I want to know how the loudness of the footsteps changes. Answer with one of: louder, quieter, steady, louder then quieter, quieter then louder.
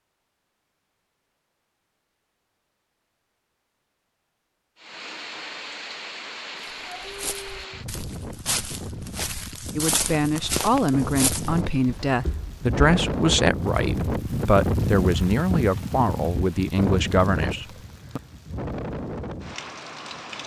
louder.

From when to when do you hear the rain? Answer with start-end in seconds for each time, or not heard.
4.8-20.4.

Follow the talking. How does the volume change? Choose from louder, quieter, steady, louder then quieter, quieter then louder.
steady.